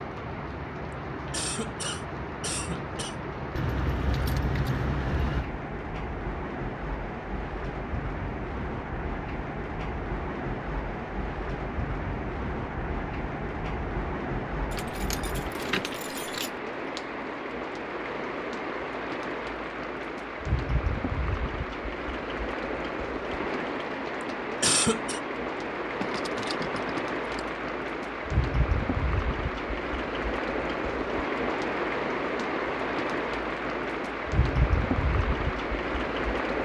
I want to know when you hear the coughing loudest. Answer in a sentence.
The volume of the coughing peaks at 25 seconds.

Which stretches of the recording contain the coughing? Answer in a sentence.
You can hear the coughing from 1.3 to 3.1 s and from 24.6 to 25.2 s.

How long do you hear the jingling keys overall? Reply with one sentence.
You can hear the jingling keys for 5 seconds altogether.